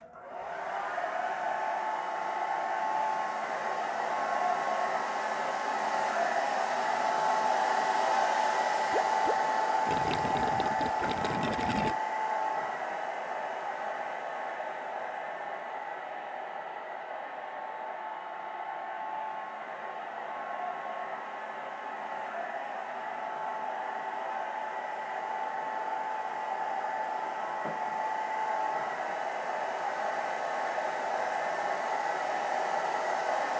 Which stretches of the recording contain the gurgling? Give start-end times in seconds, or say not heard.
8.9-11.9.